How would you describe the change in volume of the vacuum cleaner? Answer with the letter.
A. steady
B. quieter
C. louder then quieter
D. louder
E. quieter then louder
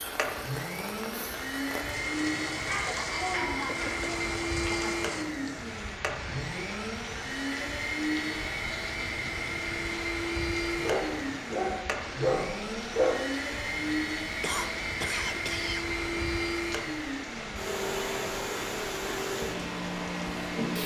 A.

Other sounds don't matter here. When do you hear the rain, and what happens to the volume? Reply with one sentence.
The rain can be heard from 0.0 to 20.8 s, at a steady volume.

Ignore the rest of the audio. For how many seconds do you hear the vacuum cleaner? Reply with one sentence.
The vacuum cleaner can be heard for 21 seconds in total.